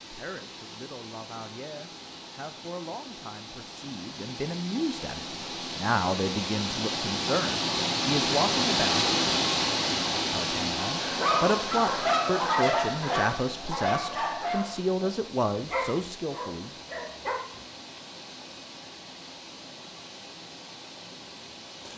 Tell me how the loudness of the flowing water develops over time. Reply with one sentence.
The volume of the flowing water goes up, then down.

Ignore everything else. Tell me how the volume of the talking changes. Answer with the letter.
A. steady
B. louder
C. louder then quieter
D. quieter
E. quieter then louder
B.